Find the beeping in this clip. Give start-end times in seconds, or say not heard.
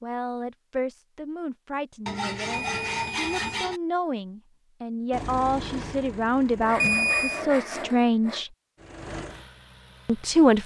2.5-3.6, 6.8-7.4.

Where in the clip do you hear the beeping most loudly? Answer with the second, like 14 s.
7 s.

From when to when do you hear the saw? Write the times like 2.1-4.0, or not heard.
2.0-3.8, 6.6-8.4.